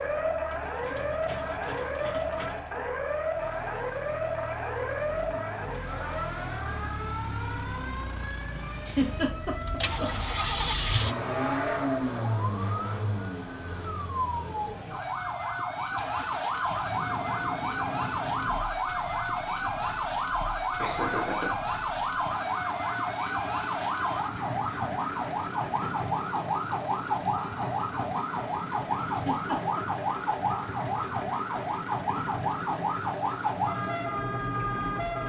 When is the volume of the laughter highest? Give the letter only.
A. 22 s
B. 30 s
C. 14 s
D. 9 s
D.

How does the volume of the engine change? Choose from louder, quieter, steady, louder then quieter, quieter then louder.
louder then quieter.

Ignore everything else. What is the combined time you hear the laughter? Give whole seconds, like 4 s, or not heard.
3 s.